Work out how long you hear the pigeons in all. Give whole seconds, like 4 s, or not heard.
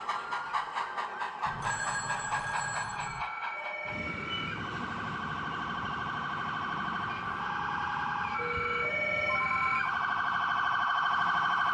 not heard.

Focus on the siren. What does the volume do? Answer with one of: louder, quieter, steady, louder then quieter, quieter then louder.
louder.